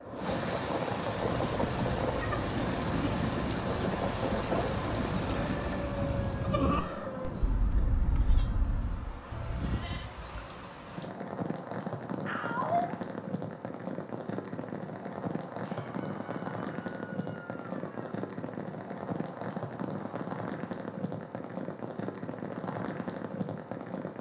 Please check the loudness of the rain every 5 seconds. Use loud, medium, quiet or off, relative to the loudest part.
loud, medium, medium, medium, medium.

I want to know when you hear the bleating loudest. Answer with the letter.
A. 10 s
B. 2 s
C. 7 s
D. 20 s
C.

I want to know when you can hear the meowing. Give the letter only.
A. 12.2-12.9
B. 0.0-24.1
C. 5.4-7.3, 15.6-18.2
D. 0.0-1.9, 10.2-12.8
A.